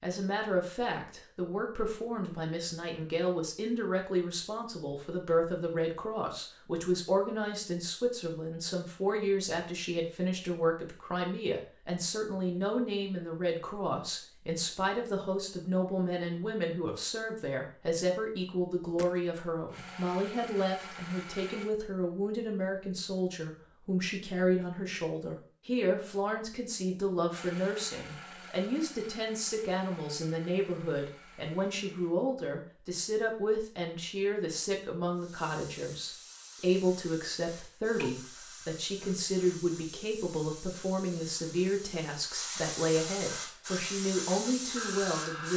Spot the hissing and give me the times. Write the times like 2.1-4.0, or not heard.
35.1-45.5.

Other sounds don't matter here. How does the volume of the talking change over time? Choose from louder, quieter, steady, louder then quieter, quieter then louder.
steady.